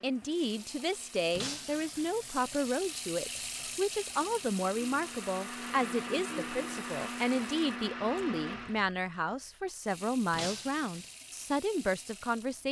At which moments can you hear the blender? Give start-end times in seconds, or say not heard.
0.0-8.8.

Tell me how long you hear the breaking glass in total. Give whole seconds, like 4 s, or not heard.
2 s.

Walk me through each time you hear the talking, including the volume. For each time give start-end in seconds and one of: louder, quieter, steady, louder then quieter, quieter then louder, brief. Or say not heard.
0.0-12.6 steady.